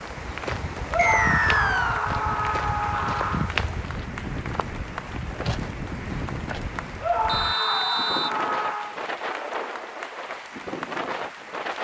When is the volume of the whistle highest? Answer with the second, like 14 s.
1 s.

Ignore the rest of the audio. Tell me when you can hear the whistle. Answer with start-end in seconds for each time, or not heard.
0.9-2.0, 7.2-8.3.